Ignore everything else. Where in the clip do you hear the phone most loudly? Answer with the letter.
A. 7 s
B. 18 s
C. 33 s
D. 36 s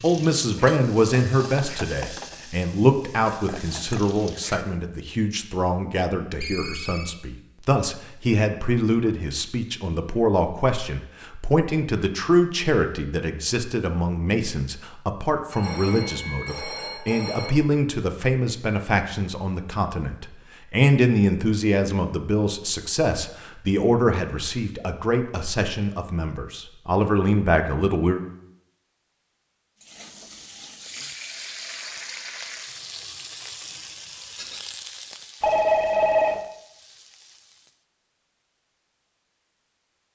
D.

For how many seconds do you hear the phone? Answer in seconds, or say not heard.
4 s.